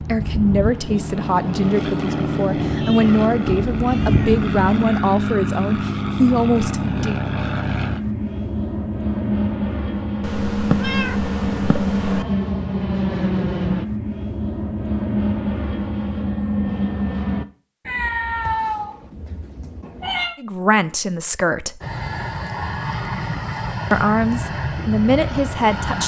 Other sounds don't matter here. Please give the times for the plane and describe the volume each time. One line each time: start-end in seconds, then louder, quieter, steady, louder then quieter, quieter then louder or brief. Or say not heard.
0.0-17.4 steady
21.8-26.0 steady.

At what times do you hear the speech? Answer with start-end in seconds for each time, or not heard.
0.0-7.2, 20.4-21.8, 23.9-26.0.